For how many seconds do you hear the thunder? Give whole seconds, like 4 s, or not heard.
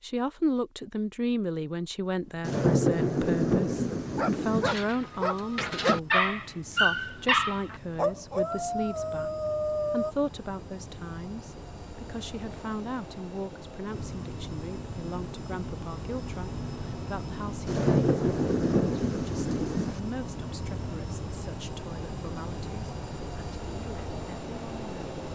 5 s.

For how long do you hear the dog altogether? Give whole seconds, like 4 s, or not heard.
6 s.